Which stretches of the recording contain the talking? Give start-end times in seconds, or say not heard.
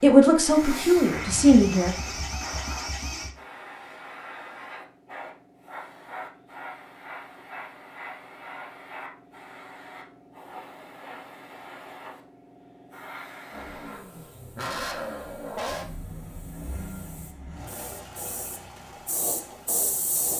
0.0-1.9.